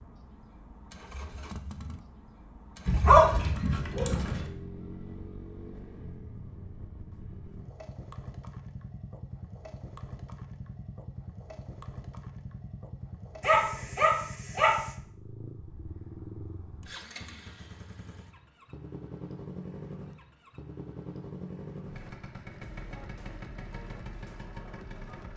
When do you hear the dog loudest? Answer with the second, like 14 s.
3 s.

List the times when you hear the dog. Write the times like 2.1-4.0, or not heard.
2.9-4.5, 13.4-14.8.